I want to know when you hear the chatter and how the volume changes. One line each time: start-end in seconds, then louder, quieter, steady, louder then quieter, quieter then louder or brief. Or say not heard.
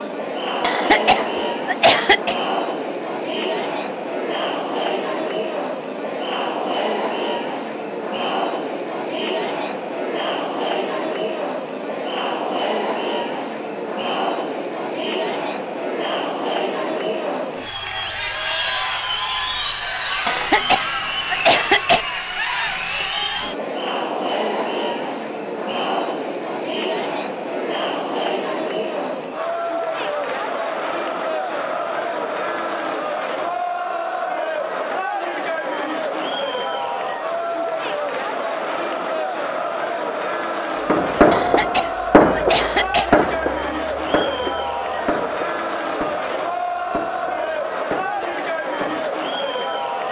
0.0-50.0 steady.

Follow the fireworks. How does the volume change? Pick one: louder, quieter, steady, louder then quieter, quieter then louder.
quieter.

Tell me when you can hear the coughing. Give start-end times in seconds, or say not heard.
0.6-2.4, 20.2-22.1, 41.3-43.1.